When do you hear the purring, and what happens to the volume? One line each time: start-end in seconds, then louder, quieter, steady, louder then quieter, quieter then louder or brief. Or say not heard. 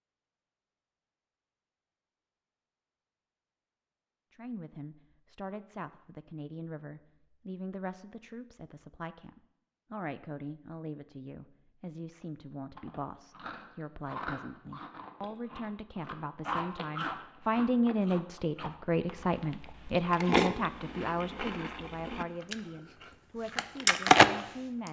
not heard.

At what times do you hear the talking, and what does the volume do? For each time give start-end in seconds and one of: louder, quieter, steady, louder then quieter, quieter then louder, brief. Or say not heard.
4.3-24.8 louder then quieter.